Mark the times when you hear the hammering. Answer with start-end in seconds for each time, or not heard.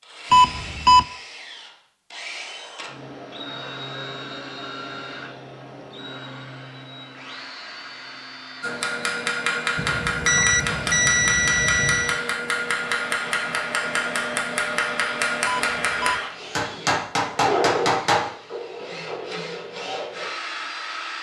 8.6-18.3.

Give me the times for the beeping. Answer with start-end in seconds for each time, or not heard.
0.3-1.1, 9.8-12.2, 15.4-16.2.